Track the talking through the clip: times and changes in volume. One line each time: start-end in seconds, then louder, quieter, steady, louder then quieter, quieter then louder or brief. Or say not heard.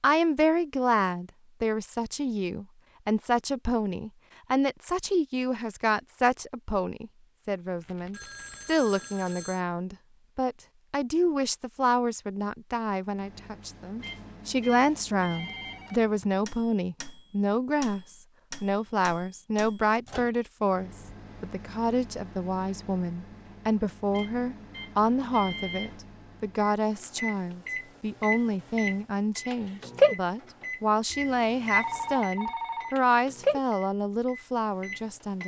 0.0-35.4 steady.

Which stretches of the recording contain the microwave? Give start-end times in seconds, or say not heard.
13.1-35.4.